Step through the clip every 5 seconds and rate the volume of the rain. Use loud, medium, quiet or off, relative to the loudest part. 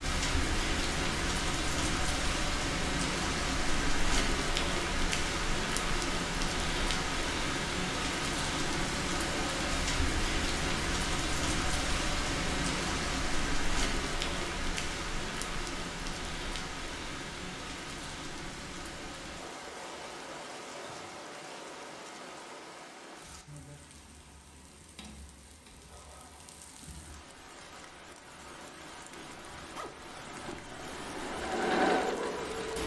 loud, loud, loud, medium, quiet, quiet, medium.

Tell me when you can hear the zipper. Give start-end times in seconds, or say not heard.
29.1-30.8.